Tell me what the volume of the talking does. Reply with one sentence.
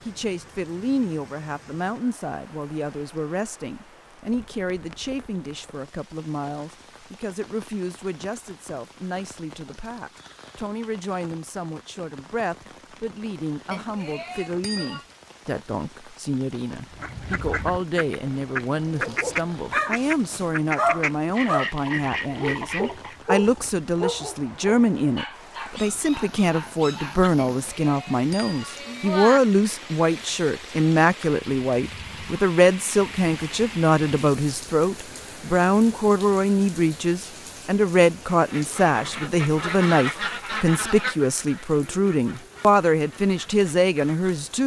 The loudness of the talking goes up.